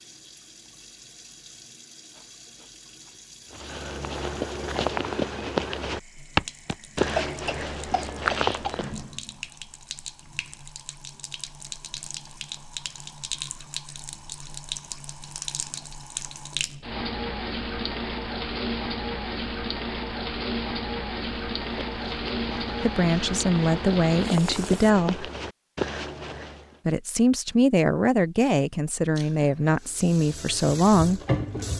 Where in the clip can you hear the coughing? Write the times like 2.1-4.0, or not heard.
7.2-8.8.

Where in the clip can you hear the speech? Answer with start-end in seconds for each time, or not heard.
22.8-25.3, 26.9-31.2.